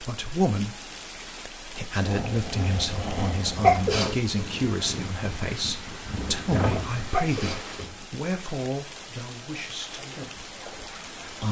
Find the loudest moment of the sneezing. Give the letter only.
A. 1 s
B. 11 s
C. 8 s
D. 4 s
D.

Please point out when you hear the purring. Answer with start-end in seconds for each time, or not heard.
2.0-8.1.